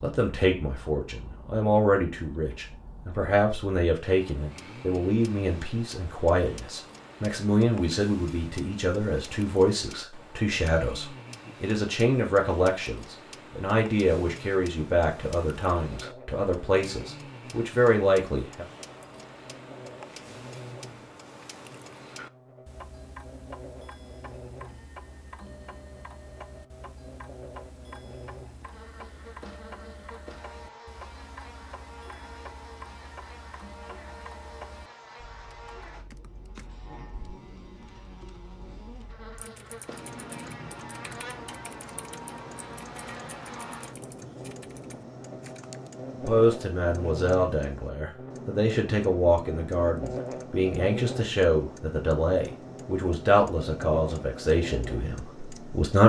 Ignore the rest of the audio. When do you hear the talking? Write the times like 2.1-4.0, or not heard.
0.0-18.6, 46.2-56.0.